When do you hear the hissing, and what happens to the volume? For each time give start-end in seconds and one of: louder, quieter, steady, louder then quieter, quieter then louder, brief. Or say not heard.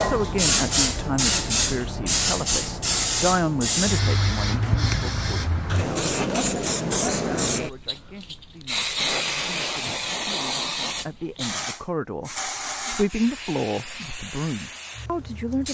0.0-15.6 quieter.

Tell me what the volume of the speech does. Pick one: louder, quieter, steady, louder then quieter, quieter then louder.
quieter then louder.